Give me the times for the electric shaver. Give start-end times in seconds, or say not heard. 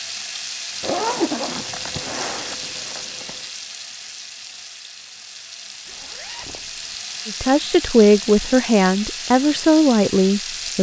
not heard.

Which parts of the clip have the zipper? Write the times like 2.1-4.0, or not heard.
0.8-3.4, 5.8-7.0.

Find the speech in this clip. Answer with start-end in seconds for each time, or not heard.
7.2-10.7.